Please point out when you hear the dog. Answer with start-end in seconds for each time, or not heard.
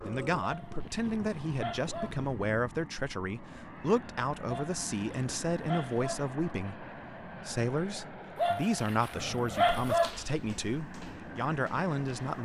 0.4-2.2, 4.5-6.3, 8.3-10.1.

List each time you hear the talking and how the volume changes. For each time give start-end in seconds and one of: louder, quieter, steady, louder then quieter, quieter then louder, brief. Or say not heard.
0.0-12.3 steady.